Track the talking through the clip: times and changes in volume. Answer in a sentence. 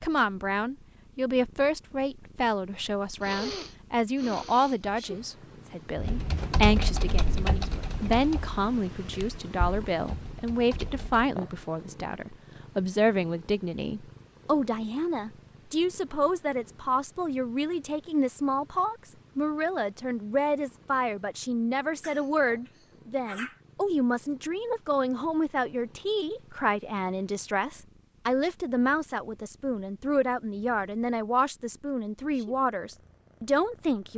You can hear the talking from 0.0 to 34.1 s, at a steady volume.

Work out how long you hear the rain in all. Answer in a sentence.
The rain can't be heard in this clip.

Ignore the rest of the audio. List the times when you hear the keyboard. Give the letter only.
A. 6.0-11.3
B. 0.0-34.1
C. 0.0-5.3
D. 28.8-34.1
A.